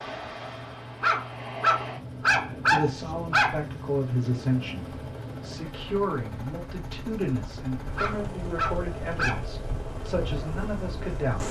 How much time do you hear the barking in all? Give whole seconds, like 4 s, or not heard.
4 s.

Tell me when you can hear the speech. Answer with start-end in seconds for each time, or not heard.
2.6-11.4.